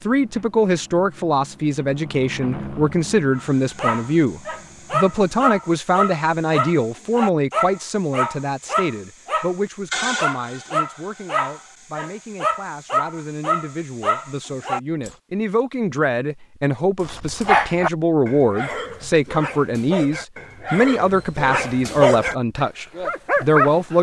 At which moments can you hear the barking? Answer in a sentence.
You can hear the barking from 3.4 to 15.2 s and from 17.0 to 23.9 s.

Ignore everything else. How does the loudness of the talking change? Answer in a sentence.
The volume of the talking goes down, then up.